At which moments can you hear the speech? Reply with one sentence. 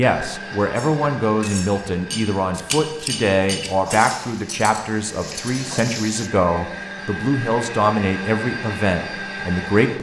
The speech can be heard from 0.0 to 9.9 s.